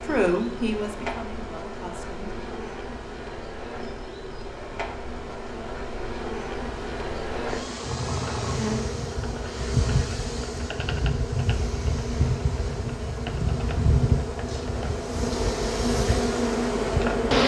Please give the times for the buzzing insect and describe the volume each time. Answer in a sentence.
You can hear the buzzing insect from 0.0 to 17.4 s, getting louder.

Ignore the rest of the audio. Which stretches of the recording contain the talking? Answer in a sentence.
The talking can be heard from 0.0 to 2.4 s.